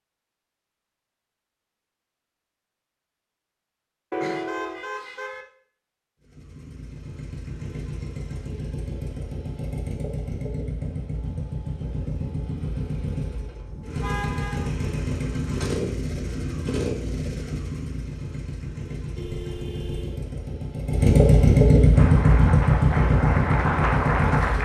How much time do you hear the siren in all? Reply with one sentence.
You can't hear the siren here.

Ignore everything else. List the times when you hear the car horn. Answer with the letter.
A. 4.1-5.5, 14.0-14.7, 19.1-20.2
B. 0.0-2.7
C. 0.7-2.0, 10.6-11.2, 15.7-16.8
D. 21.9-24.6
A.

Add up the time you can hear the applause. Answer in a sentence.
The applause can be heard for 3 seconds in total.